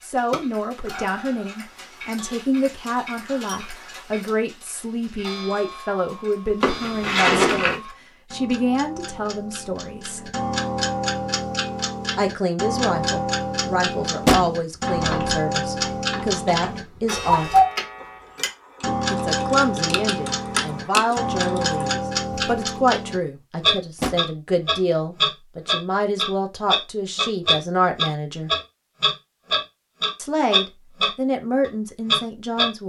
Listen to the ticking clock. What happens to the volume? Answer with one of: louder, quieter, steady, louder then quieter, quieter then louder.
louder.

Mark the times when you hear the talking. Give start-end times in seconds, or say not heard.
0.0-10.3, 12.2-17.5, 19.1-28.5, 30.1-32.8.